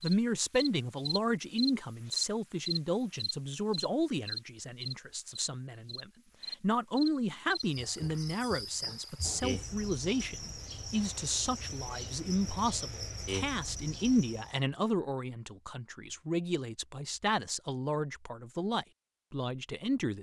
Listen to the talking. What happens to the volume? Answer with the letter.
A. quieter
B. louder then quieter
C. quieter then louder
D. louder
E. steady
E.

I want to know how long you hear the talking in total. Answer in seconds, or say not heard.
20 s.